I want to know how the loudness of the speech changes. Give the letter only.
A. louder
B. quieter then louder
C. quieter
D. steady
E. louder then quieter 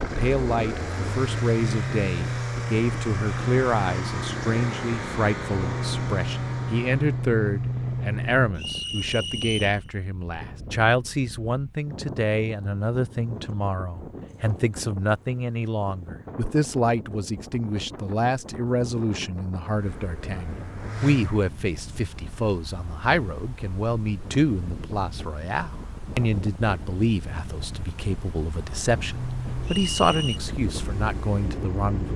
D.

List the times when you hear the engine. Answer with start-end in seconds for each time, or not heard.
0.0-8.6, 19.8-21.4, 29.1-32.1.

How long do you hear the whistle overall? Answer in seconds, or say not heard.
2 s.